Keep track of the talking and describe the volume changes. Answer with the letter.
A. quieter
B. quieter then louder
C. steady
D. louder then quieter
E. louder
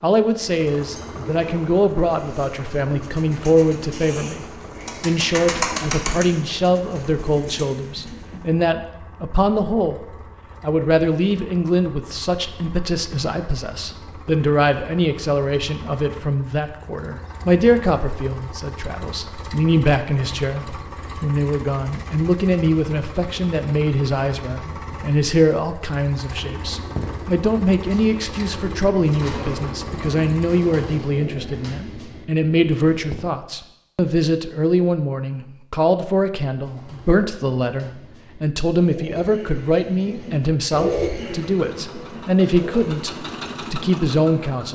C.